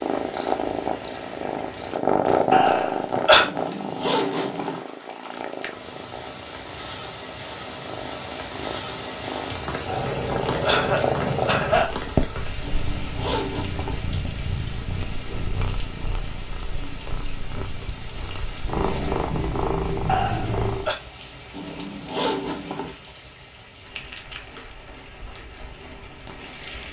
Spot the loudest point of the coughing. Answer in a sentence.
The volume of the coughing peaks at 3 seconds.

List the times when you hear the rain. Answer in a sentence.
You can hear the rain from 0.0 to 26.8 s.